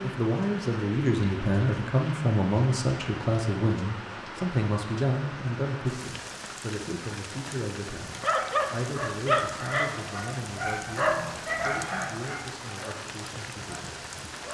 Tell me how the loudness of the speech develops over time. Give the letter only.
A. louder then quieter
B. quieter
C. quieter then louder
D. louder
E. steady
B.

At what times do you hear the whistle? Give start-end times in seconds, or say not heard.
not heard.